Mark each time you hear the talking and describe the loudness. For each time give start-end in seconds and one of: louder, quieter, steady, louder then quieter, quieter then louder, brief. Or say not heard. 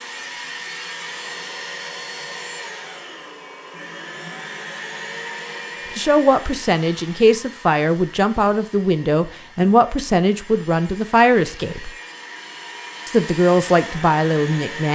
6.0-11.9 steady
13.1-14.8 brief.